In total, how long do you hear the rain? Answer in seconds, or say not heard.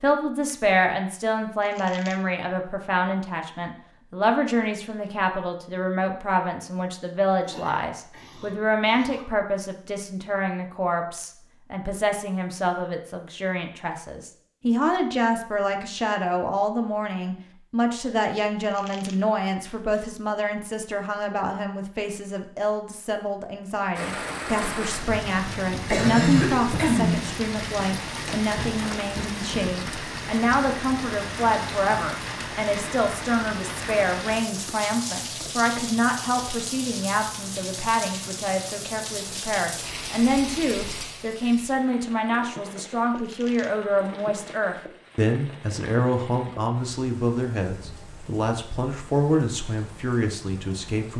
27 s.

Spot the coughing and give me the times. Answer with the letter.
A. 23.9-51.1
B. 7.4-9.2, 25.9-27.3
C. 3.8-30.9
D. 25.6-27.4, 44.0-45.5
B.